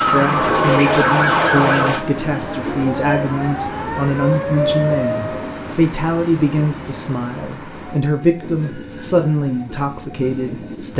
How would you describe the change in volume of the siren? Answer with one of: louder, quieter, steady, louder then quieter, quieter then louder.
quieter then louder.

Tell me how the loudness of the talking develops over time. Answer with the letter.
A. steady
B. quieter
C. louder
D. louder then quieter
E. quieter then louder
A.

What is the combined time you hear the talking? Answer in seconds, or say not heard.
11 s.